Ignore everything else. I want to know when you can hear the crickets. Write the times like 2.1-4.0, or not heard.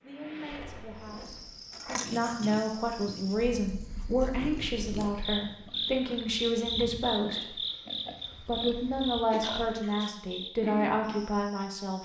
0.0-11.9.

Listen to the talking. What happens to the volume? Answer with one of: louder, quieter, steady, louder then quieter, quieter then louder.
louder.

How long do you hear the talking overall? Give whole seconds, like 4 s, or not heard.
11 s.